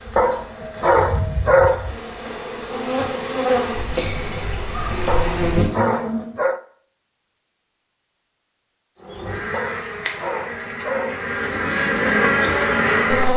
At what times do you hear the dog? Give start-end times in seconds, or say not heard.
0.1-1.9, 5.0-6.6, 9.5-11.2.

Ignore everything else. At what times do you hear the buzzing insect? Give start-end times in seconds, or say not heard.
0.0-6.3, 9.0-13.3.